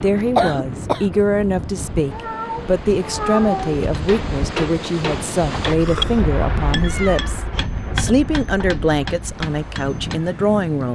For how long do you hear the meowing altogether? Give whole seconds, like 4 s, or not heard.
4 s.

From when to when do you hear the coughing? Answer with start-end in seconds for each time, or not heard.
0.1-1.2, 5.8-6.2.